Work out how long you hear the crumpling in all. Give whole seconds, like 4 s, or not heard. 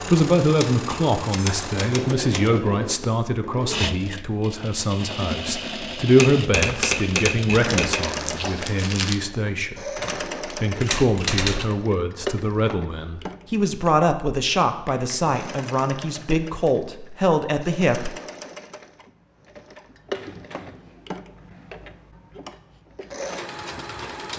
2 s.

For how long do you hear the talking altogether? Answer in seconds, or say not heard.
18 s.